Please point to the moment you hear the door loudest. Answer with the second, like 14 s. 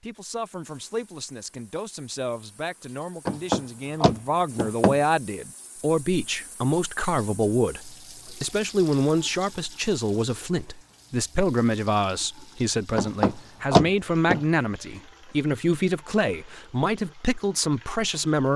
14 s.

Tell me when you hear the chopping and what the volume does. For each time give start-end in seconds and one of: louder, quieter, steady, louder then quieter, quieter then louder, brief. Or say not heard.
not heard.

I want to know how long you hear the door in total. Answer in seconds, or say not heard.
3 s.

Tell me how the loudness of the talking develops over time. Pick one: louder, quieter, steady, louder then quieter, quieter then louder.
louder.